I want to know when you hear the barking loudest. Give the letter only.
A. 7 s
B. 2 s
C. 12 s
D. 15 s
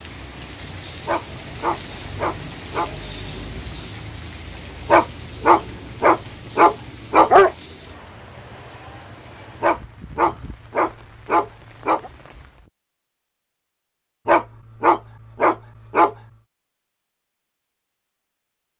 A.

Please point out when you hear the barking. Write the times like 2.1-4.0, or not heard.
1.1-2.9, 4.8-7.5, 9.6-12.1, 14.2-16.1.